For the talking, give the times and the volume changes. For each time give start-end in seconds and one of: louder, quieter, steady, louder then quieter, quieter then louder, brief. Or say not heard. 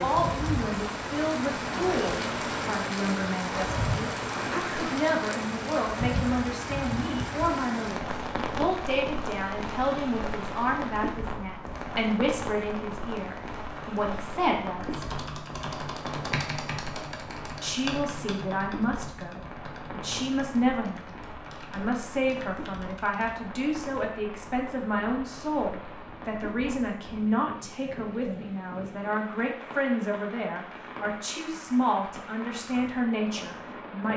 0.0-15.1 steady
17.6-34.1 steady.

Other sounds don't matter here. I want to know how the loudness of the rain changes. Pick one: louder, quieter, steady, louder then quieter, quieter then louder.
quieter.